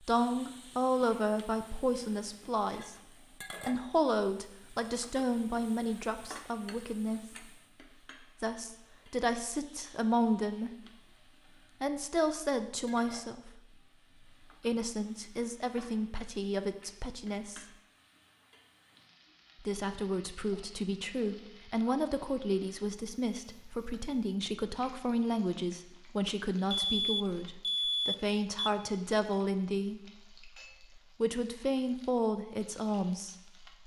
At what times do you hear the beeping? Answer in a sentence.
The beeping can be heard from 26.7 to 28.7 s.